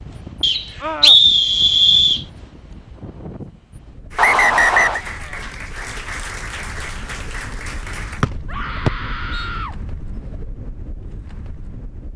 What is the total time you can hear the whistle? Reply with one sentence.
The whistle can be heard for 4 seconds in total.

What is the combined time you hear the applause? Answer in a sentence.
The applause can be heard for 4 seconds in total.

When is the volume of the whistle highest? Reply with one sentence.
The volume of the whistle peaks at 1 second.